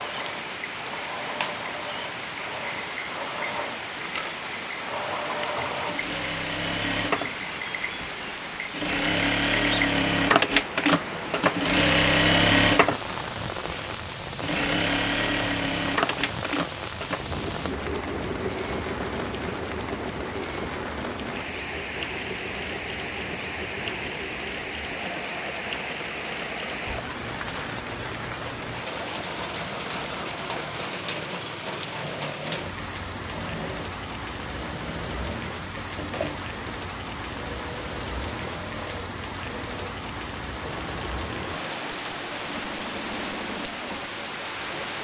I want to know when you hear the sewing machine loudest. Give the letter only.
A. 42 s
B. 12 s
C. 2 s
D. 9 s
B.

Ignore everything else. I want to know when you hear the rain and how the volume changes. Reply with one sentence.
You can hear the rain from 0.0 to 44.9 s, at a steady volume.